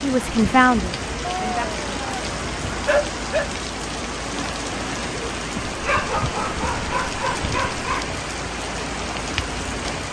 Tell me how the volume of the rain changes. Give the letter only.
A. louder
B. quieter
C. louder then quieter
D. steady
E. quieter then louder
D.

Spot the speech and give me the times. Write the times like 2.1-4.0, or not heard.
0.0-1.6.